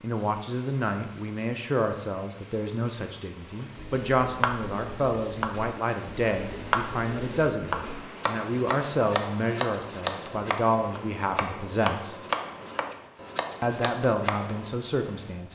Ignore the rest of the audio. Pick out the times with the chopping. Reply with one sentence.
You can hear the chopping from 3.5 to 14.8 s.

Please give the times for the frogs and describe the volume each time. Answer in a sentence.
You can't hear the frogs here.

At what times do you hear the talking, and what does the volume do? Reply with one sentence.
The talking can be heard from 0.0 to 12.2 s, at a steady volume; and briefly from 13.6 to 15.5 s.